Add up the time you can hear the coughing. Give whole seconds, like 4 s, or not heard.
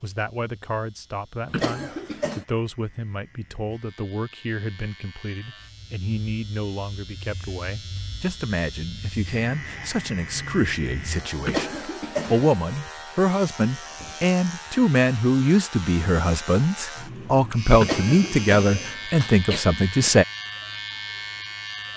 4 s.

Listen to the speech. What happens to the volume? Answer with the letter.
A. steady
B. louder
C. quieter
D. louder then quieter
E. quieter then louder
B.